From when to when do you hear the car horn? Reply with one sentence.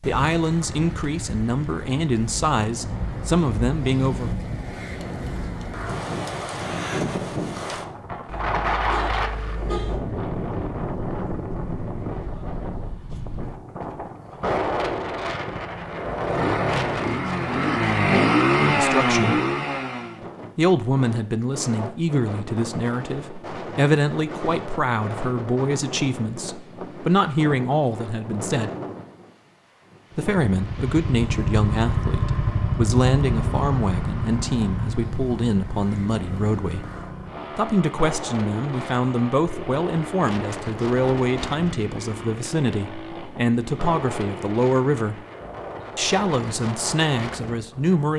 The car horn can be heard from 8.2 to 10.0 s.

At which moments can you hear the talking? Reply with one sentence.
You can hear the talking from 0.0 to 4.3 s, from 18.7 to 19.4 s, from 20.6 to 28.7 s, from 30.1 to 36.8 s, from 37.5 to 45.2 s and from 46.0 to 48.1 s.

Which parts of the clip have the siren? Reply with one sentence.
You can't hear the siren here.